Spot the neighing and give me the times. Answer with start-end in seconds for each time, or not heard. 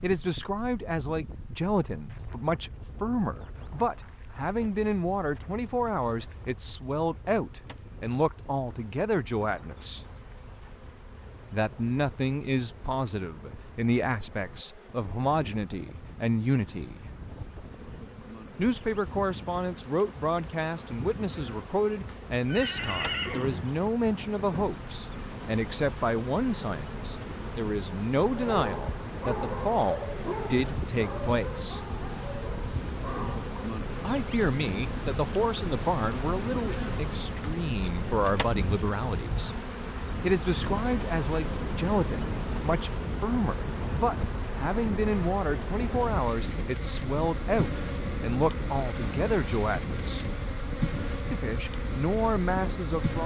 22.4-23.8.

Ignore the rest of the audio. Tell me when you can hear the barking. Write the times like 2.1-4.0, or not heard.
28.2-33.7.